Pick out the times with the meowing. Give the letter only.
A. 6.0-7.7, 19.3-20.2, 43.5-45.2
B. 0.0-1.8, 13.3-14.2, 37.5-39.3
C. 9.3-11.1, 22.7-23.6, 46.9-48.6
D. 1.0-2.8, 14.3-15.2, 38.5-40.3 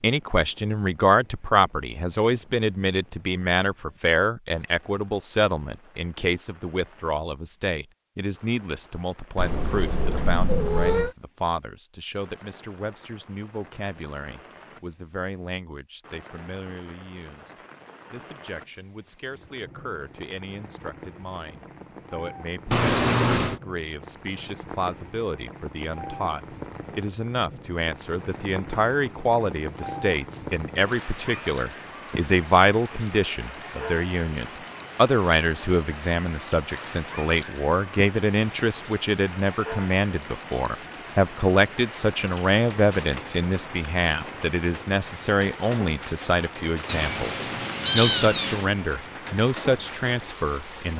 C.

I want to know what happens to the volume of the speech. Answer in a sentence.
The loudness of the speech goes down, then up.